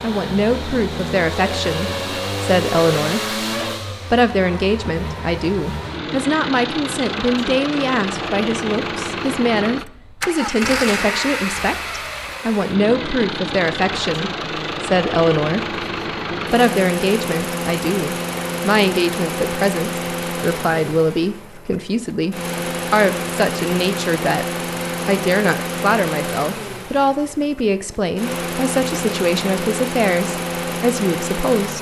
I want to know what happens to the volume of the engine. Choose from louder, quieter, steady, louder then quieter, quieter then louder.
steady.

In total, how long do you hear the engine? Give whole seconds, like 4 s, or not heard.
32 s.